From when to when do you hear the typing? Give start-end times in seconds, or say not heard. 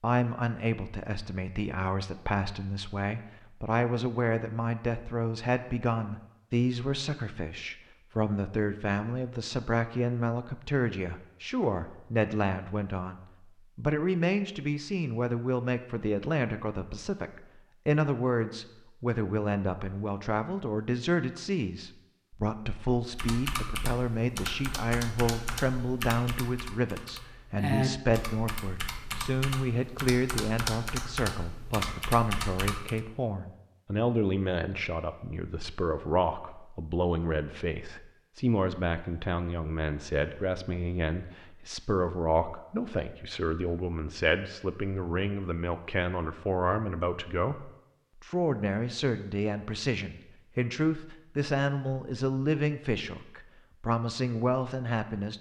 23.1-33.0.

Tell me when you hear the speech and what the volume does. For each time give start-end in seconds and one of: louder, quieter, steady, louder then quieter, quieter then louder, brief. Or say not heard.
0.0-55.3 steady.